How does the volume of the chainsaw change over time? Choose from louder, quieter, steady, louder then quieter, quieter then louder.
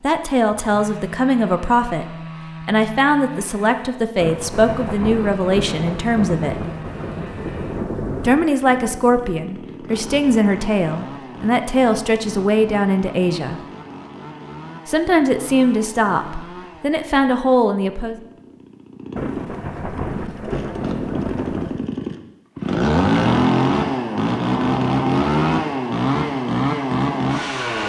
louder.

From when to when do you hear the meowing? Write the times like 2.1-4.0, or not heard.
not heard.